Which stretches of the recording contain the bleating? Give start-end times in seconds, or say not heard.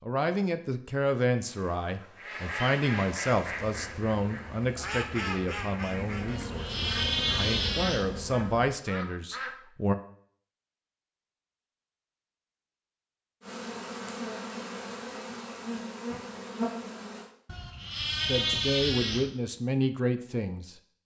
6.2-8.1, 17.4-19.3.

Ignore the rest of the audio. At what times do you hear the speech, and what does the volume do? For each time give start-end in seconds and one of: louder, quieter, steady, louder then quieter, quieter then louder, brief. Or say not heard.
0.0-9.9 quieter then louder
18.2-20.8 brief.